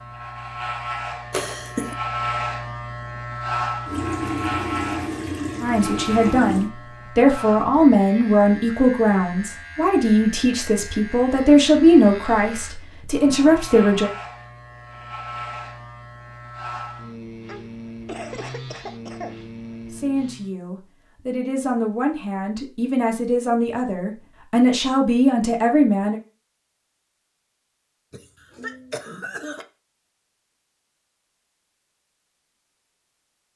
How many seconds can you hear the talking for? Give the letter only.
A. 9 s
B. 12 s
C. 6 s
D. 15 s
D.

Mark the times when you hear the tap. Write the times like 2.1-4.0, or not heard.
3.9-6.7.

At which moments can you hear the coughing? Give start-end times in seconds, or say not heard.
1.3-1.9, 17.4-19.4, 28.1-29.6.